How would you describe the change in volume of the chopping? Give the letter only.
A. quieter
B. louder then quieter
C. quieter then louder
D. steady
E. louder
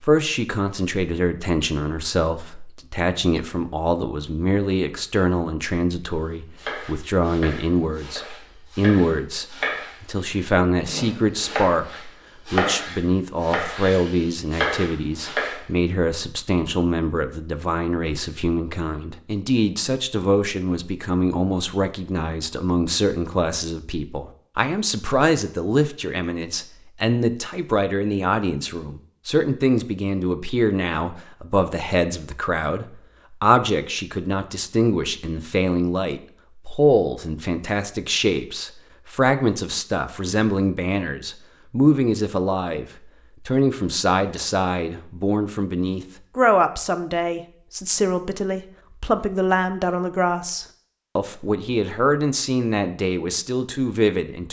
E.